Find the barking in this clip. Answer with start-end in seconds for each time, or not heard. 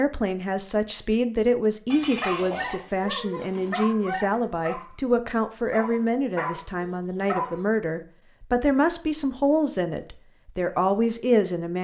2.2-7.7.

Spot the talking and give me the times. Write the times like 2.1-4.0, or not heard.
0.0-11.8.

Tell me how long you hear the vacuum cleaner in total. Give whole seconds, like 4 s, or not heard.
not heard.